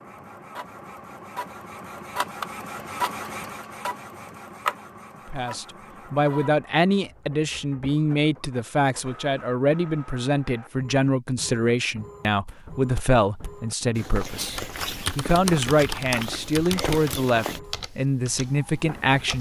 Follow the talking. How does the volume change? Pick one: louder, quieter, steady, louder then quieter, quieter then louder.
steady.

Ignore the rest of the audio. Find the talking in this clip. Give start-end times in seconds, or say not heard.
5.2-19.3.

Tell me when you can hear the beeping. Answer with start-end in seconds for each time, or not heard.
not heard.